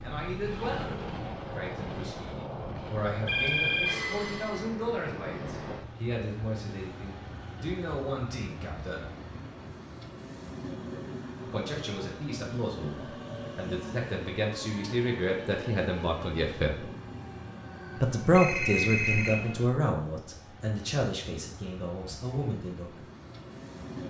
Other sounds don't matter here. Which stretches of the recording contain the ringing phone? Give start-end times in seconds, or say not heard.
3.2-4.0, 18.2-19.4.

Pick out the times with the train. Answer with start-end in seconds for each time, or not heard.
0.0-24.0.